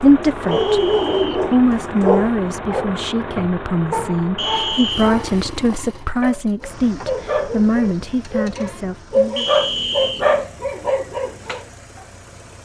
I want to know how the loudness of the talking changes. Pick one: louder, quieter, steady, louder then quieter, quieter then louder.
steady.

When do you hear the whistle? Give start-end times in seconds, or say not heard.
0.5-1.4, 4.3-5.1, 9.3-10.2.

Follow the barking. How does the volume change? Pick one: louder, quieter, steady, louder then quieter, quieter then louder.
quieter then louder.